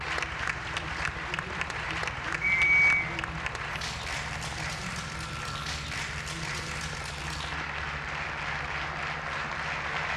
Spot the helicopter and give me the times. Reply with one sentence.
You can hear the helicopter from 0.0 to 10.1 s.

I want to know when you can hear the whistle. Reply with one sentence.
You can hear the whistle from 2.4 to 3.0 s.